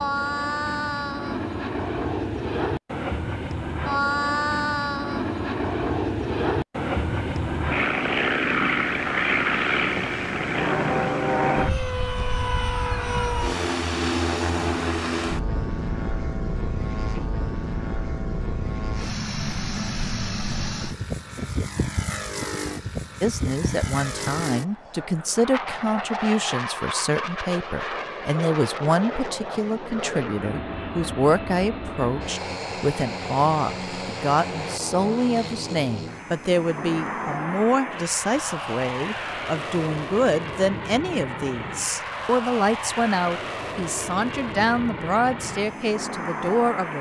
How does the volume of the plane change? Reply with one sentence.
The volume of the plane goes down.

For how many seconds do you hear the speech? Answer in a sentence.
The speech can be heard for 24 seconds in total.